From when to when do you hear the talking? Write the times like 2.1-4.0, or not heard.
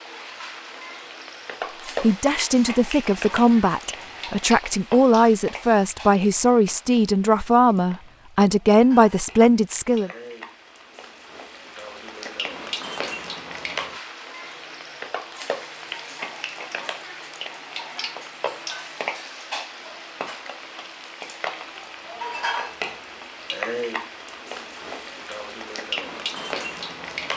2.0-10.1.